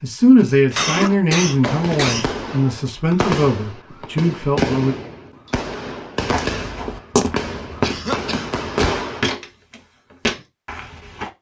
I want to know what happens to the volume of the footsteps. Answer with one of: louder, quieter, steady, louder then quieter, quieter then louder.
steady.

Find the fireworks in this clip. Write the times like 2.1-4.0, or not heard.
1.4-9.2.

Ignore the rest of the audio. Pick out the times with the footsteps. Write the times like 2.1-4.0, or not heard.
6.2-11.3.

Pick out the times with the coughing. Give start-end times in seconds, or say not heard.
0.7-2.4, 7.8-8.6.